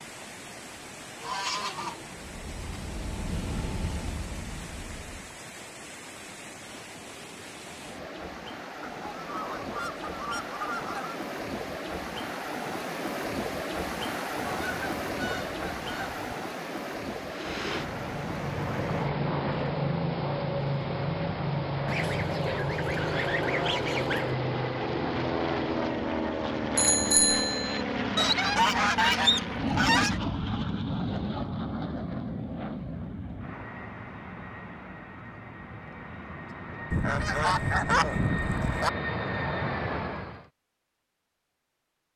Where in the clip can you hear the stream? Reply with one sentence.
The stream can be heard from 0.0 to 25.9 s.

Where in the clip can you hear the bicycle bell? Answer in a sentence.
The bicycle bell can be heard from 26.8 to 27.9 s.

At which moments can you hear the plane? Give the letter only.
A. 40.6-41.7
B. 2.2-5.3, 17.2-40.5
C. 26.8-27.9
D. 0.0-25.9
B.